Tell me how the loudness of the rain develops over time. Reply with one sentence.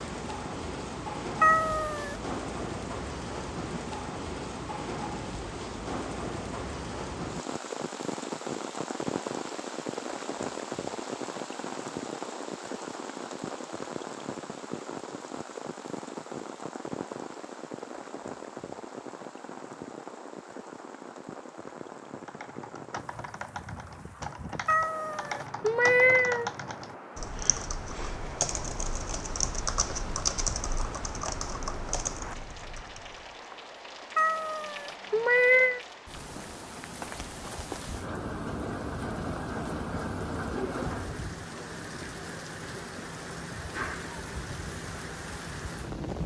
The volume of the rain goes down, then up.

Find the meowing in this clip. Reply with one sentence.
The meowing can be heard from 1.4 to 2.1 s, from 24.6 to 26.5 s and from 34.1 to 35.8 s.